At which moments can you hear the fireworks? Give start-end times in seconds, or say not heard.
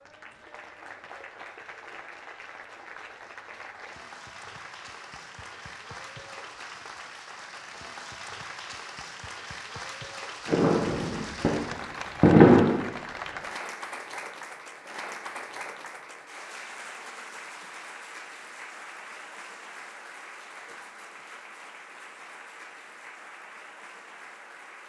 10.4-12.8.